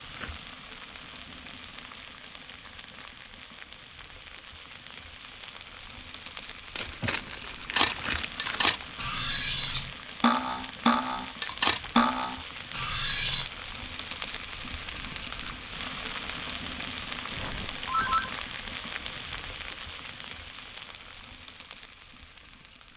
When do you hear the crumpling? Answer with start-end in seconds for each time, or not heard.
6.8-8.8.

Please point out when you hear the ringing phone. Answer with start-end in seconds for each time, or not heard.
17.3-18.4.